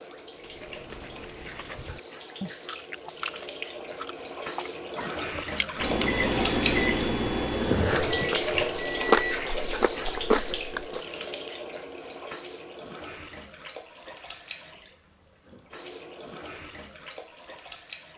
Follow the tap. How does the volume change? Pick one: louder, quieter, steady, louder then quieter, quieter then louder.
louder then quieter.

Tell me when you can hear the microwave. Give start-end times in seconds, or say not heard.
5.8-9.2.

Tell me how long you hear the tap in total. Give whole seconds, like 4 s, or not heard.
18 s.